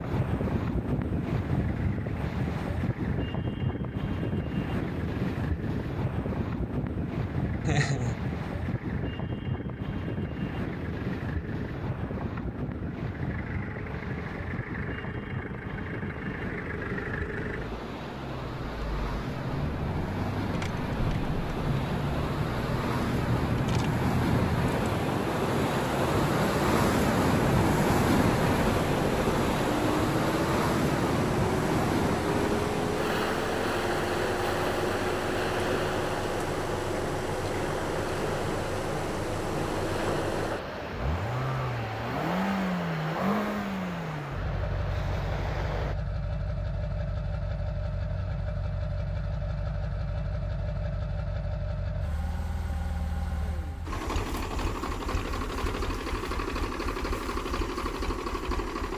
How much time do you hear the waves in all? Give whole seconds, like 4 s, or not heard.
46 s.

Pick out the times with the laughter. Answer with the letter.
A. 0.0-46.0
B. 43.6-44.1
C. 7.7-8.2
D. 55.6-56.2
C.